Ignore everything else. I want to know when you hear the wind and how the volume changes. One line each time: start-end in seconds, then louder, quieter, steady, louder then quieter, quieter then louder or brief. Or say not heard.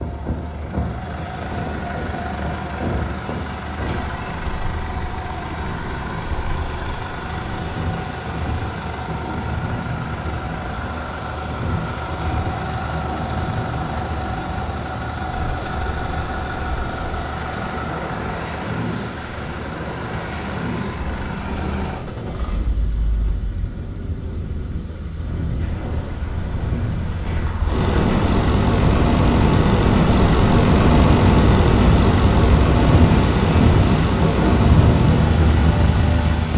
0.0-36.5 louder.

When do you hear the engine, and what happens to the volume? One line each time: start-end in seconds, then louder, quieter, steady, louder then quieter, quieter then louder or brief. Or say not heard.
0.0-36.5 louder.